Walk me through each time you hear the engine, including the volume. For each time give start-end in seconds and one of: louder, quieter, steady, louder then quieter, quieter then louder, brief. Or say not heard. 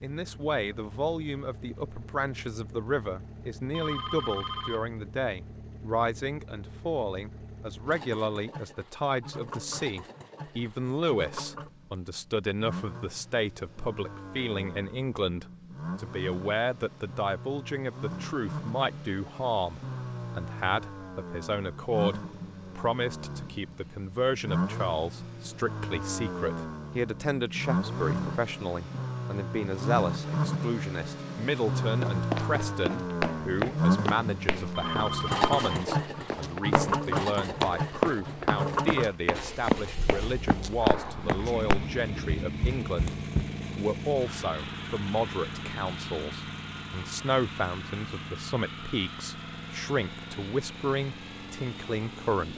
0.0-52.5 louder then quieter.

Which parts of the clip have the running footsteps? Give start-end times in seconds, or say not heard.
32.0-43.5.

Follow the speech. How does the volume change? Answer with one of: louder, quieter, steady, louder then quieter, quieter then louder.
steady.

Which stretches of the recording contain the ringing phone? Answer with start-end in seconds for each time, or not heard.
3.7-4.9, 34.8-35.7.